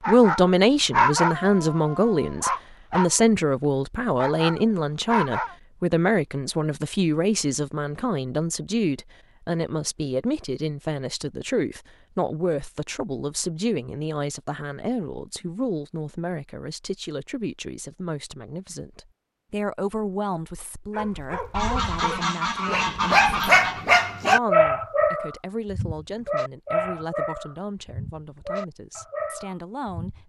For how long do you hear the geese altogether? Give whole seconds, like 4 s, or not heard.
2 s.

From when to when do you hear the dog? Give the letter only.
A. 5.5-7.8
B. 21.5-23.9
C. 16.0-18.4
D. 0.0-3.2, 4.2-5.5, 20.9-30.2
D.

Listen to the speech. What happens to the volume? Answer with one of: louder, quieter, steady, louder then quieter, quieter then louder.
quieter.